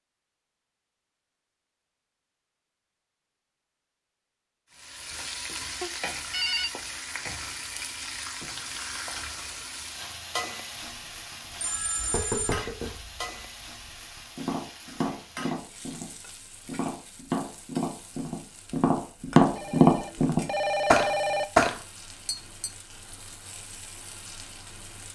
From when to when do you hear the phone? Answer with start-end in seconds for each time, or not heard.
5.8-6.7, 11.6-12.6, 19.6-21.4.